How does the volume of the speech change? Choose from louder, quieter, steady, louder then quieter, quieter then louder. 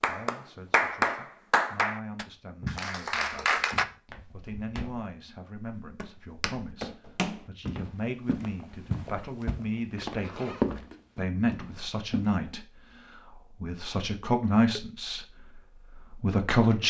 louder.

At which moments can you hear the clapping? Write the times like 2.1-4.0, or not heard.
0.0-3.9.